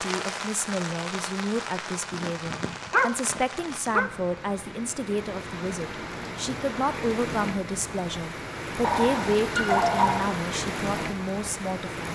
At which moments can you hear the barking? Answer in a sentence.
The barking can be heard from 2.1 to 4.1 s and from 8.8 to 10.3 s.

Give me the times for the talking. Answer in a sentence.
The talking can be heard from 0.0 to 12.1 s.